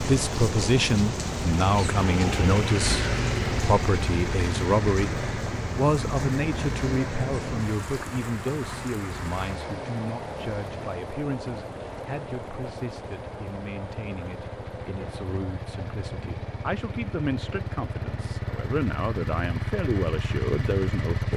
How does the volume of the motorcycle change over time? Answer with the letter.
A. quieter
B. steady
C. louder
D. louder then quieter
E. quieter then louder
E.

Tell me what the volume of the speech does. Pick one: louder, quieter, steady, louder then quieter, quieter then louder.
quieter then louder.